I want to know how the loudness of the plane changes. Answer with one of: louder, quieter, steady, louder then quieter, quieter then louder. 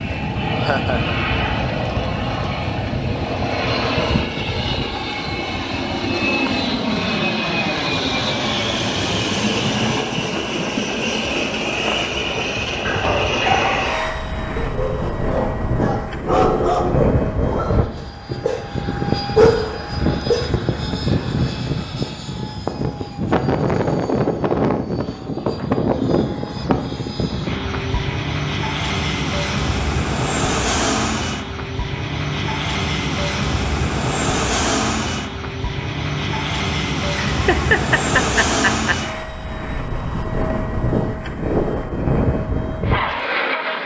steady.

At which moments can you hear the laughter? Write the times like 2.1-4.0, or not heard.
0.6-1.2, 37.2-39.0.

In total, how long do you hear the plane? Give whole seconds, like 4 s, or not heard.
44 s.